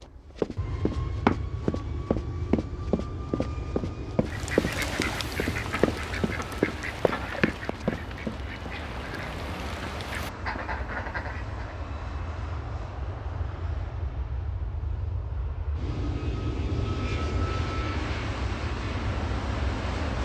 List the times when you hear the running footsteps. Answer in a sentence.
The running footsteps can be heard from 0.3 to 8.7 s.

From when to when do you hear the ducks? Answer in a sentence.
The ducks can be heard from 4.2 to 11.8 s.